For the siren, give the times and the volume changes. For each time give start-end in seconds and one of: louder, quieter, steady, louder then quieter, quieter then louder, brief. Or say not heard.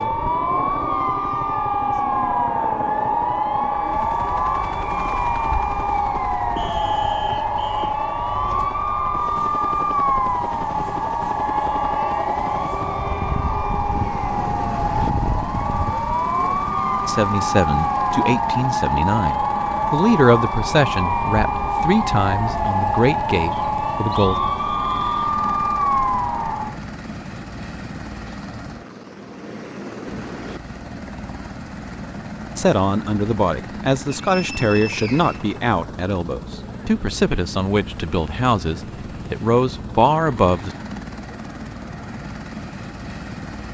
0.0-26.8 steady.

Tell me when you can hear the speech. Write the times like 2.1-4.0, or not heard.
17.1-24.4, 32.5-40.7.